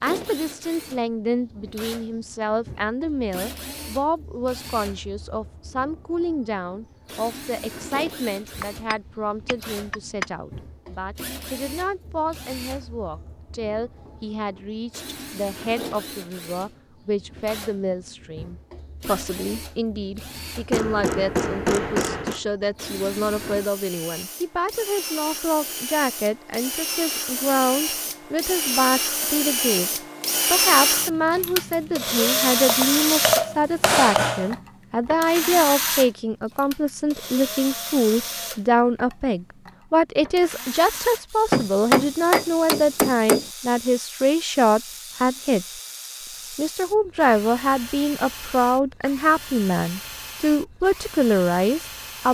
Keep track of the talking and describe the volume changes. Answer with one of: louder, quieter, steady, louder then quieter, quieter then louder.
louder.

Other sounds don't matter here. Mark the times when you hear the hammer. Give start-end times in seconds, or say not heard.
8.6-10.2, 20.7-22.4, 32.6-34.5, 41.5-43.4.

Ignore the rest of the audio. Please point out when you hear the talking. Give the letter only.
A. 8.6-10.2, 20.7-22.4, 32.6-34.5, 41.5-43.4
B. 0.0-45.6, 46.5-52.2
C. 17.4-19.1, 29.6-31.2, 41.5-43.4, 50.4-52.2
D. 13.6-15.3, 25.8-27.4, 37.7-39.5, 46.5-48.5
B.